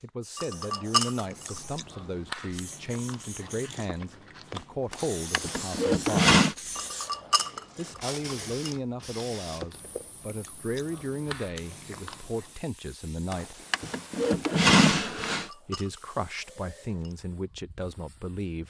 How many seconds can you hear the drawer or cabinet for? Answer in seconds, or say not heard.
4 s.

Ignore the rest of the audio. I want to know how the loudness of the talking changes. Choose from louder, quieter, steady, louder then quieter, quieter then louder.
steady.